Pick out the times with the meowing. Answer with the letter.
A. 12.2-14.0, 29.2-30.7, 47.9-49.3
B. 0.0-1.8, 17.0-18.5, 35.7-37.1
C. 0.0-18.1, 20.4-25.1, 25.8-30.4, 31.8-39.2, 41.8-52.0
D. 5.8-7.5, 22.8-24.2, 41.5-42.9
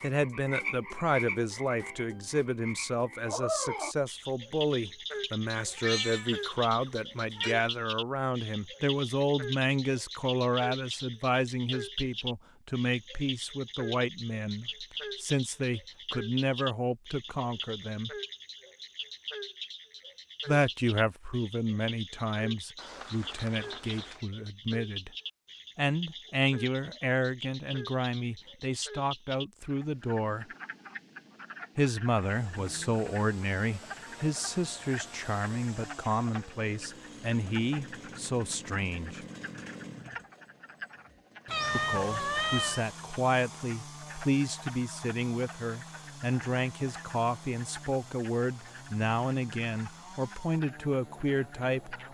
D.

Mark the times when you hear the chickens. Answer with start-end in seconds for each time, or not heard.
not heard.